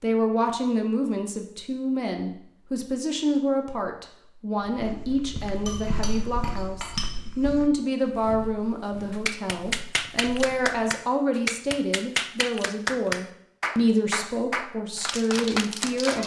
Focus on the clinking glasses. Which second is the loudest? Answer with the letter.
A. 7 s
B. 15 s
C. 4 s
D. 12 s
A.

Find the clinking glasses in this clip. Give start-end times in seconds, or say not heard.
5.7-7.2.